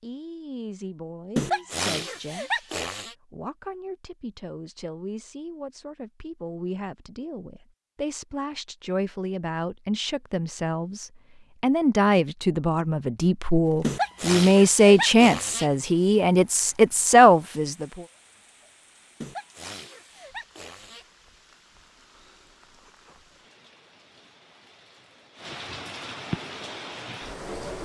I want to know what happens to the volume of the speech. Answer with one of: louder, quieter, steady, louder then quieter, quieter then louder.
louder.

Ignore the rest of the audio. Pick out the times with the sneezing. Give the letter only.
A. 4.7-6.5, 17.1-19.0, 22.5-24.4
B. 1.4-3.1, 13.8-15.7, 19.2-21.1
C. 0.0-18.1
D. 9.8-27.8
B.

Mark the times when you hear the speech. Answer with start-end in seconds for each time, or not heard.
0.0-18.1.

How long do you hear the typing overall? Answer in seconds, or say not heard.
not heard.